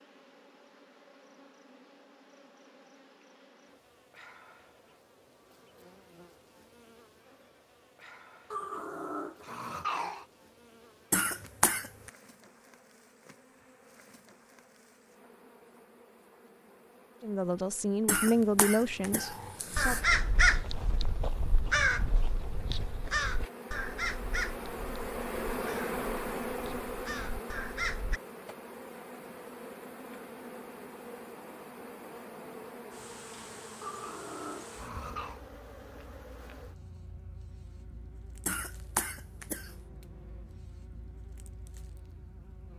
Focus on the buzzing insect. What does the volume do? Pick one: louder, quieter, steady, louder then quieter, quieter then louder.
louder then quieter.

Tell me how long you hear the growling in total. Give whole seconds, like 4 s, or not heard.
4 s.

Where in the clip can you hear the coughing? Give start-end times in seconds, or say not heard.
11.1-12.1, 18.1-20.1, 38.5-39.8.